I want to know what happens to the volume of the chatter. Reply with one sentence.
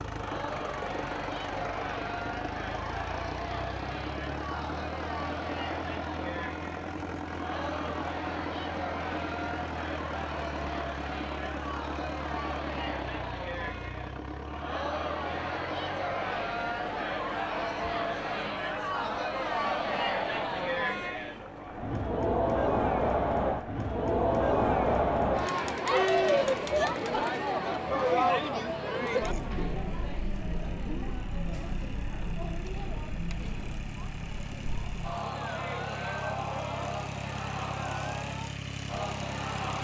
The loudness of the chatter goes up, then down.